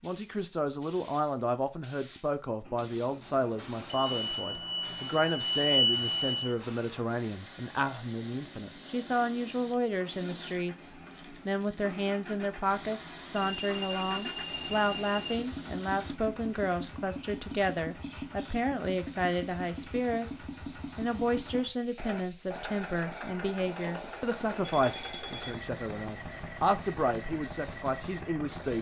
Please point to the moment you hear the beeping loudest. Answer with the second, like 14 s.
6 s.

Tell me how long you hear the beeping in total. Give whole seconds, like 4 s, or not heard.
5 s.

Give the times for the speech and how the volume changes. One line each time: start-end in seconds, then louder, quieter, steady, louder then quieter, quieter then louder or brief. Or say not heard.
0.0-28.7 steady.